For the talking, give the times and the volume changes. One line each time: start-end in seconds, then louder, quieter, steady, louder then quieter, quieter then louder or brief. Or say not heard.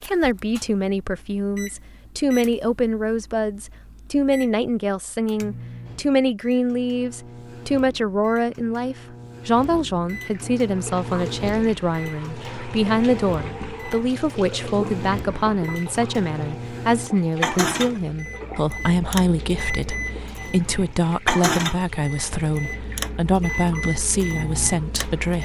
0.0-25.4 steady.